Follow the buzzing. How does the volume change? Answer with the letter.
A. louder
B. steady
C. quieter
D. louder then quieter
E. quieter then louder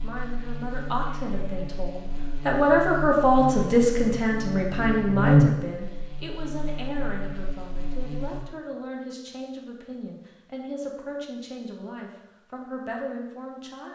D.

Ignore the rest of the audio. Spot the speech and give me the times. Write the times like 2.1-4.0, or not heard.
0.0-13.9.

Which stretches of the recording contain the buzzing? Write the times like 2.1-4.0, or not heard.
0.0-8.4.